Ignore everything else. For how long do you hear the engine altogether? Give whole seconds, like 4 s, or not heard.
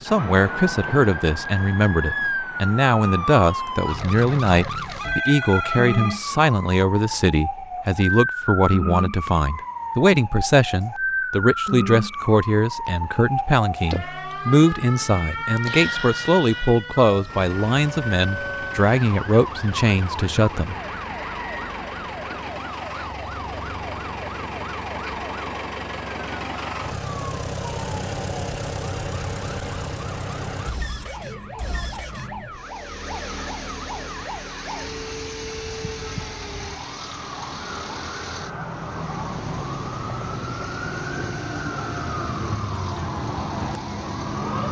27 s.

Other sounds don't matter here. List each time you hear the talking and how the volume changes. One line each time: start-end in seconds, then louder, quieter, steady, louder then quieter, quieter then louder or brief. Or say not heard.
0.0-20.8 steady.